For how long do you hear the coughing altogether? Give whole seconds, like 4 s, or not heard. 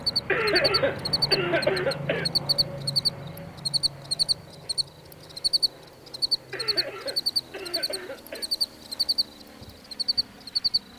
4 s.